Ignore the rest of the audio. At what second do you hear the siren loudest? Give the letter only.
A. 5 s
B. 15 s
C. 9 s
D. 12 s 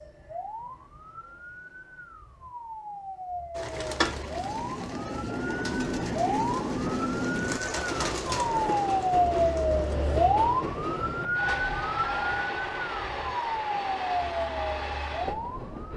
C.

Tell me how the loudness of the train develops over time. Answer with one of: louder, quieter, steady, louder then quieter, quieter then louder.
steady.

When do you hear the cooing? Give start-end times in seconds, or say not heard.
3.5-9.9.